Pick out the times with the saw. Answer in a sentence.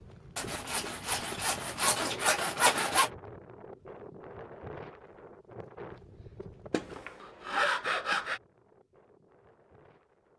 The saw can be heard from 0.3 to 3.1 s and from 6.7 to 8.4 s.